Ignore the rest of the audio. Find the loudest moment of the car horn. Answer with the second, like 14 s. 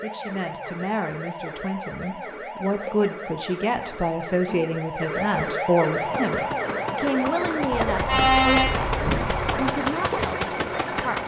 8 s.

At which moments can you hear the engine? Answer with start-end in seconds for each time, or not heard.
6.0-11.2.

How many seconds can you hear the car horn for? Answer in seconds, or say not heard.
2 s.